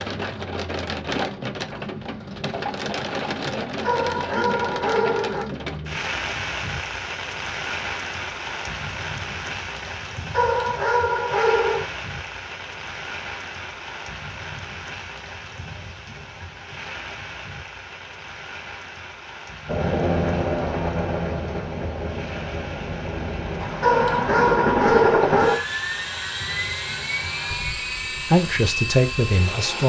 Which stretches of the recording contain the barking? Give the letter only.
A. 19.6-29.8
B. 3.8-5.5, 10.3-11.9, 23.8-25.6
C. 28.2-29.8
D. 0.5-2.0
B.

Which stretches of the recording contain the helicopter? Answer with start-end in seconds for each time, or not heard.
19.6-29.8.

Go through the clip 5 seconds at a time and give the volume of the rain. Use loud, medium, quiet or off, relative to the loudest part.
loud, loud, medium, medium, medium, medium.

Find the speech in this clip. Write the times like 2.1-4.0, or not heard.
28.2-29.8.